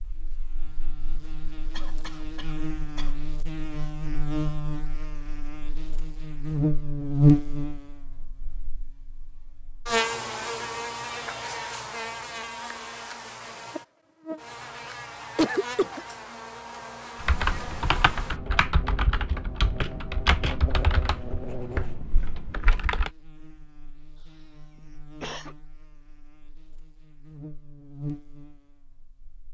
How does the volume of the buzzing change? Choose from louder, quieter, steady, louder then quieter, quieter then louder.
louder then quieter.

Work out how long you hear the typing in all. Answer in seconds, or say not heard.
6 s.